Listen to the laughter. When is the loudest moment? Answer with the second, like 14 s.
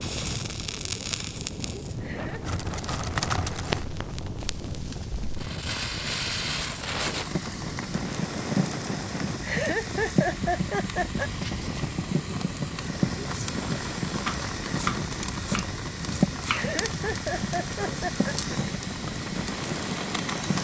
10 s.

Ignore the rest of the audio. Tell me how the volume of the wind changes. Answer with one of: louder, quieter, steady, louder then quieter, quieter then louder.
steady.